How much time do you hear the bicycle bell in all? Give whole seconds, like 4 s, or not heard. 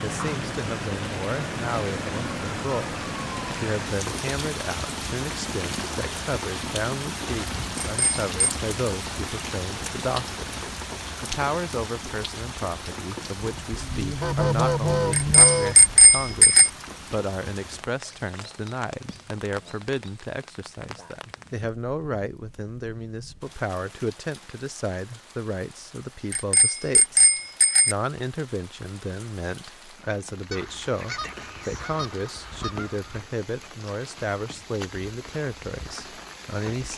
4 s.